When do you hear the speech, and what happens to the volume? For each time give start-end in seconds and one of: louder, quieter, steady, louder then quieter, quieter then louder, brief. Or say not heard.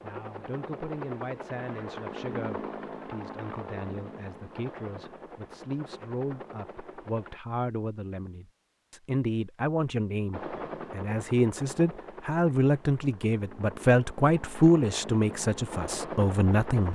0.0-16.9 louder.